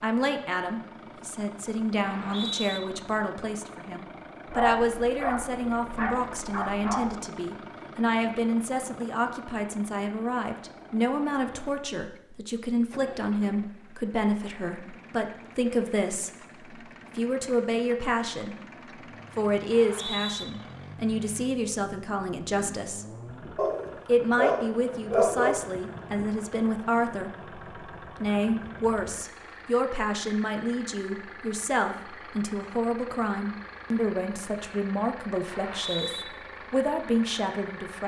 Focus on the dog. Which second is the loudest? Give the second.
25 s.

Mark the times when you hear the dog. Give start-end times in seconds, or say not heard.
4.5-7.2, 23.6-25.6.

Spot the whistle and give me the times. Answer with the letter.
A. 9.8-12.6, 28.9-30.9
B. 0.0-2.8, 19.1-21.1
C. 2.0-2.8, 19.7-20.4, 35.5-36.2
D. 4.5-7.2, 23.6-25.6
C.